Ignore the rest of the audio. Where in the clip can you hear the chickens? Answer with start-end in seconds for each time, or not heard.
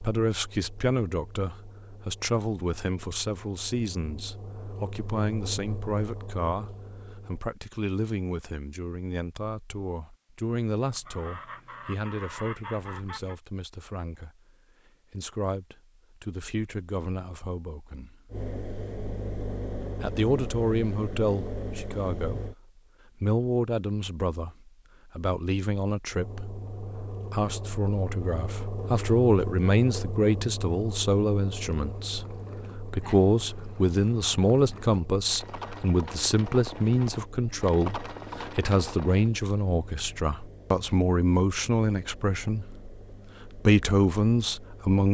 10.9-13.3.